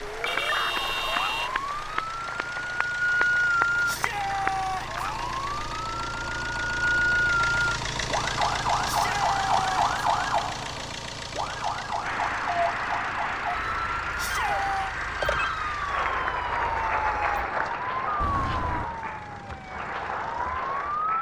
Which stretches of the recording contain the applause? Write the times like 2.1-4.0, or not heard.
0.0-4.7, 12.0-21.1.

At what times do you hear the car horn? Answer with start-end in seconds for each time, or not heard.
0.2-1.5, 18.2-18.9.